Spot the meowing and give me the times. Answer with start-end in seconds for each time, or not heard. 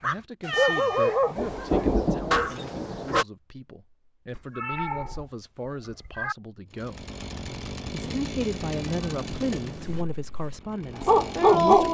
0.4-1.2, 4.3-6.3, 8.0-10.1.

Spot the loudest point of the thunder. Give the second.
2 s.